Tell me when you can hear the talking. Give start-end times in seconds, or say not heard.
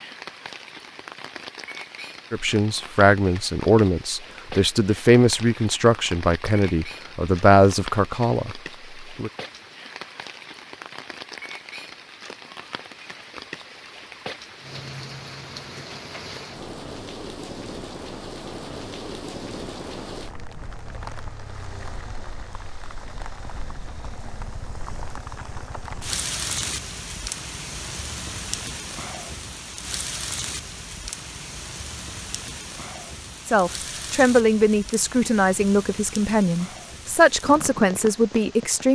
2.3-9.3, 33.5-38.9.